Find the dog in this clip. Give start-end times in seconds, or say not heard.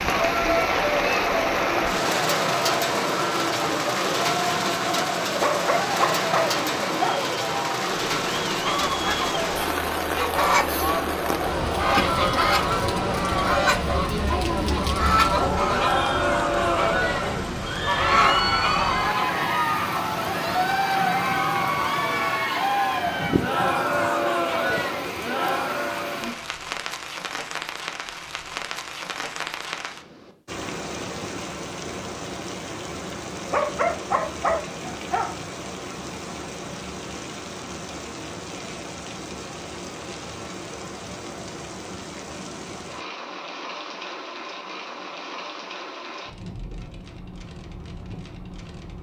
5.2-7.2, 33.4-35.3.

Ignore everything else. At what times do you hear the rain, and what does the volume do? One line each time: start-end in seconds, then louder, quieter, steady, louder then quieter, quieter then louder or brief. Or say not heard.
0.0-48.9 quieter.